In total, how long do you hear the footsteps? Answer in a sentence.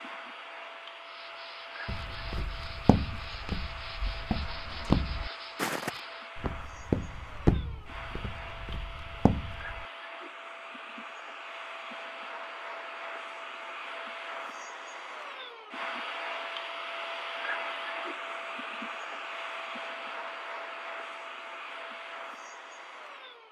The footsteps can be heard for 8 seconds in total.